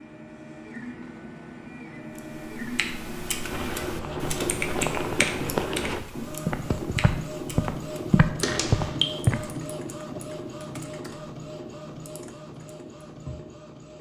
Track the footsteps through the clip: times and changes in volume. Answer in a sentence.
The footsteps can be heard from 3.5 to 9.4 s, getting louder.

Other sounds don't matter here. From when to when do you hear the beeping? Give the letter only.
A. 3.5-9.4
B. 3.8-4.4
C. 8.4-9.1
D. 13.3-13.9
C.